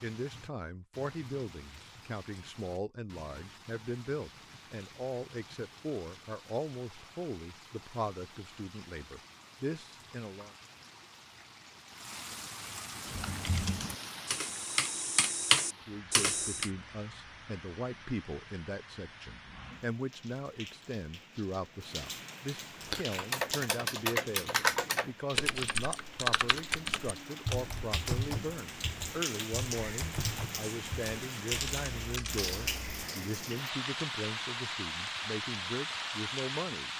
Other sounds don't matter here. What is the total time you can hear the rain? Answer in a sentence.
The rain can be heard for 37 seconds in total.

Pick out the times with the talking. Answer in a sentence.
The talking can be heard from 0.0 to 10.5 s and from 15.7 to 36.9 s.